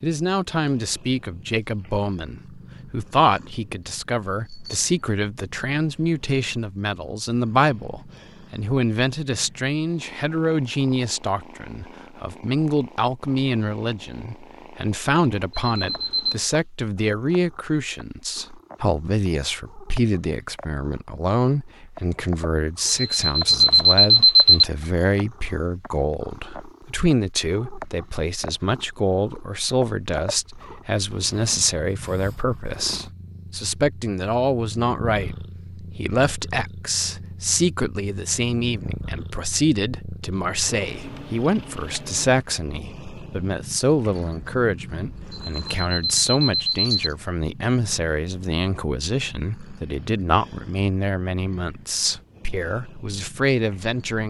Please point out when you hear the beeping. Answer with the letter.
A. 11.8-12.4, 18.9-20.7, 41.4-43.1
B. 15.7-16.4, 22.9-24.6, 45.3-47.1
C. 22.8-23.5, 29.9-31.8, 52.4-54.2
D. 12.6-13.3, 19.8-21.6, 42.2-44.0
B.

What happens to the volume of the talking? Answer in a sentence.
The volume of the talking stays about the same.